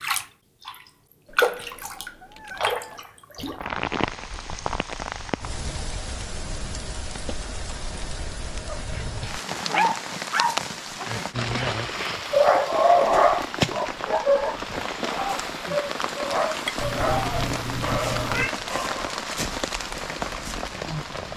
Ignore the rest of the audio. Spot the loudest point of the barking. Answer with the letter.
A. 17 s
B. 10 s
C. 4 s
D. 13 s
D.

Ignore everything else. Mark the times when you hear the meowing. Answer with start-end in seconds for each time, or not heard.
1.2-3.0, 16.8-18.6.